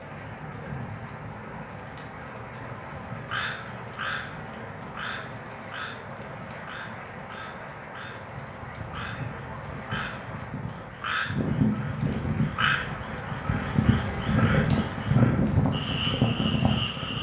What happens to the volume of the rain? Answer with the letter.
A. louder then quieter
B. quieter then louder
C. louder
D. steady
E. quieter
C.